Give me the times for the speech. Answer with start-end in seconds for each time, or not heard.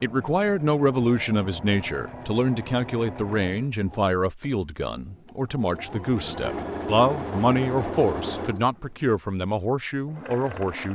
0.0-10.9.